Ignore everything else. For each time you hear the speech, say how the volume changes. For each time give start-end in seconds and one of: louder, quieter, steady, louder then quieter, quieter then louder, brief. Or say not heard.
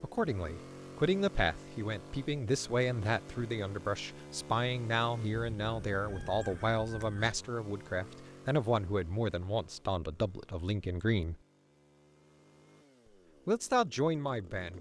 0.0-11.3 steady
13.4-14.7 brief.